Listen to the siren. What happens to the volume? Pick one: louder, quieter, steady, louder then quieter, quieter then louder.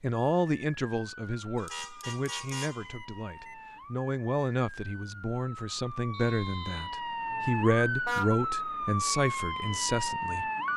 louder.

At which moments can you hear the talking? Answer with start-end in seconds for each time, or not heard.
0.0-10.4.